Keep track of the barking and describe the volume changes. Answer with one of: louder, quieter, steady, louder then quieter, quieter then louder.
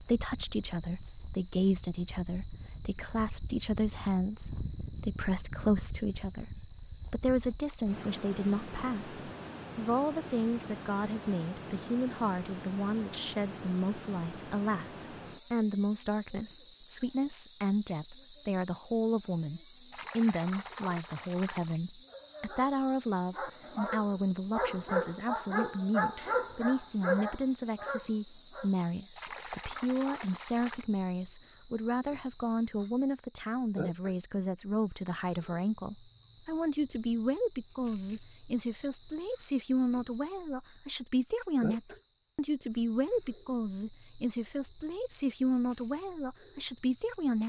louder then quieter.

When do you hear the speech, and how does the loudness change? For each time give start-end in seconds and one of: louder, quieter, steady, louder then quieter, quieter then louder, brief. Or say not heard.
0.0-47.4 steady.